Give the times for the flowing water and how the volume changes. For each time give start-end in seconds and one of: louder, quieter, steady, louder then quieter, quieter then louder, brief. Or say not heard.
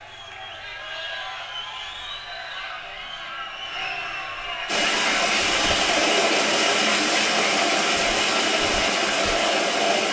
4.7-10.0 steady.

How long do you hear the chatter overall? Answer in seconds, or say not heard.
10 s.